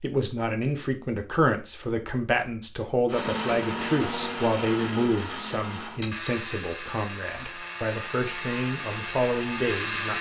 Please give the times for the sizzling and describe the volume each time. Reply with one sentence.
The sizzling can't be heard in this clip.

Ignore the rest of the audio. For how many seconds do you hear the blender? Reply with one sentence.
The blender can be heard for 7 seconds in total.